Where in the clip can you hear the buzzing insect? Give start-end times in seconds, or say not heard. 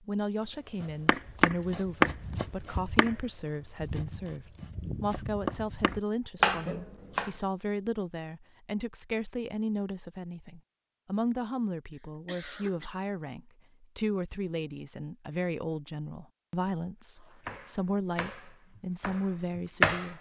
not heard.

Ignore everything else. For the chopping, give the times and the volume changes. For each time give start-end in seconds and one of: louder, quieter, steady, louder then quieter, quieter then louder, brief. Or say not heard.
0.8-7.3 quieter then louder
17.2-20.1 brief.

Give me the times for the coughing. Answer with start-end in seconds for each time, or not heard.
11.9-12.9.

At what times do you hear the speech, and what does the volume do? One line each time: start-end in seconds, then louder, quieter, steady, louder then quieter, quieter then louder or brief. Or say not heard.
0.0-20.1 steady.